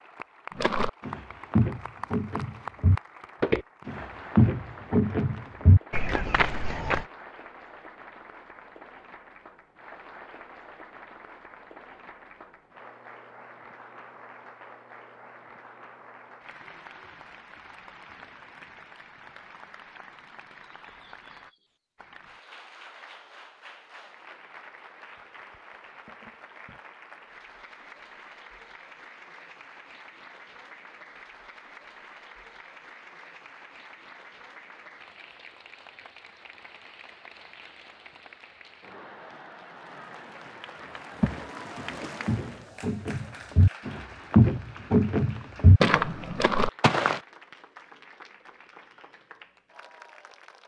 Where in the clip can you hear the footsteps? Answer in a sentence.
The footsteps can be heard from 0.6 to 7.0 s and from 41.2 to 47.2 s.